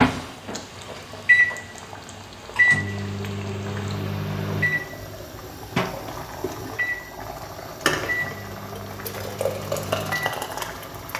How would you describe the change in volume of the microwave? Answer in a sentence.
The loudness of the microwave goes down.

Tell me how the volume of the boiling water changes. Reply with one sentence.
The loudness of the boiling water goes up.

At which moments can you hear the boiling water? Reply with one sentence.
You can hear the boiling water from 0.1 to 11.1 s.